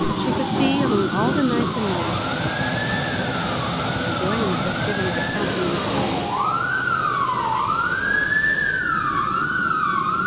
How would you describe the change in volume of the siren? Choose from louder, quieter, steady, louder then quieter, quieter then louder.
louder.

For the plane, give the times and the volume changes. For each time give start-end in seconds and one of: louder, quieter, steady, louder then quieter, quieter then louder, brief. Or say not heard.
0.0-10.2 quieter.